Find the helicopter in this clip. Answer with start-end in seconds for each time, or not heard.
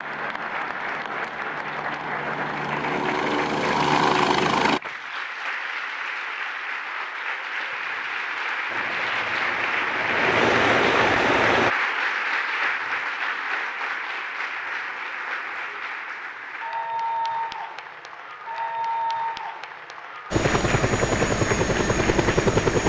0.0-4.8, 8.7-11.8, 20.3-22.8.